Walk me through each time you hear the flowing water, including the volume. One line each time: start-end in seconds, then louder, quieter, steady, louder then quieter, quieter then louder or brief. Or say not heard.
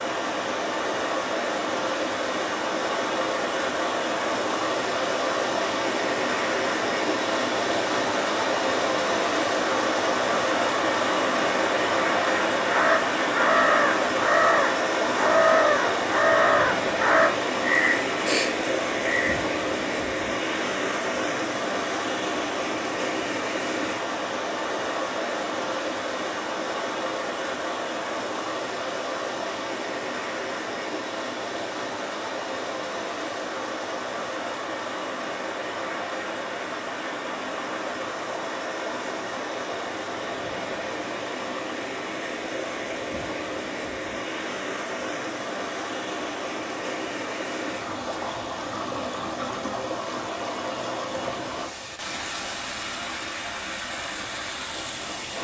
0.0-55.3 quieter.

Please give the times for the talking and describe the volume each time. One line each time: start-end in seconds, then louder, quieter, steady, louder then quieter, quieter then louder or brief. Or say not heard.
not heard.